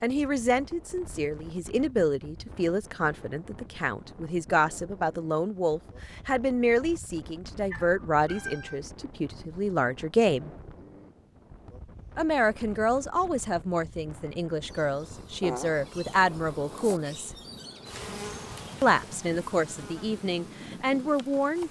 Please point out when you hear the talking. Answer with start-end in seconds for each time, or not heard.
0.0-10.5, 12.2-17.3, 18.8-21.6.